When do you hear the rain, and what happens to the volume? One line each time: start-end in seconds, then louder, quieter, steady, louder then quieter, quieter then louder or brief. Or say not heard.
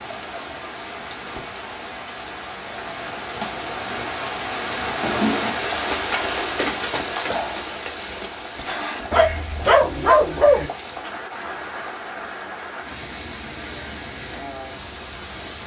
0.0-15.6 louder then quieter.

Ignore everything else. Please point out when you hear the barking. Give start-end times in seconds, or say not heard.
9.1-10.7.